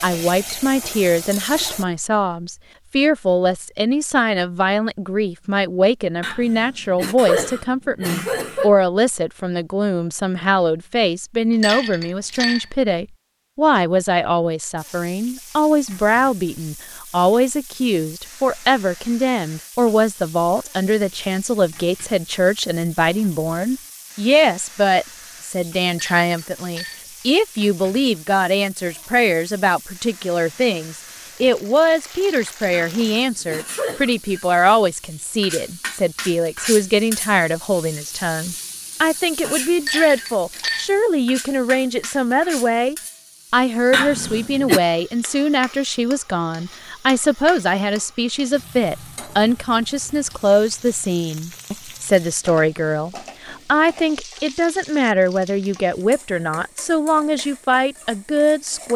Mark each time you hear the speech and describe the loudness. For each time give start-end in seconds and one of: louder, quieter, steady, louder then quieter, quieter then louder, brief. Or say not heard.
0.0-58.9 steady.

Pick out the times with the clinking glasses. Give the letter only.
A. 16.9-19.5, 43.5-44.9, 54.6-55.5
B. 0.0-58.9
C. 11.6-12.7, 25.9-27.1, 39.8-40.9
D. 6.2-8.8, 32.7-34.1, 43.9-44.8
C.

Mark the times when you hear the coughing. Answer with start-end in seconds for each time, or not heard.
6.2-8.8, 32.7-34.1, 43.9-44.8.